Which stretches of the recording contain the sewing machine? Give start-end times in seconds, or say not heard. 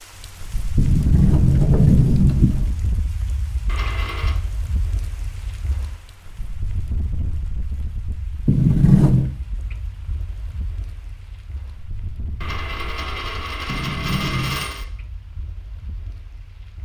not heard.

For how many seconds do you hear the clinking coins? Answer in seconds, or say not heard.
3 s.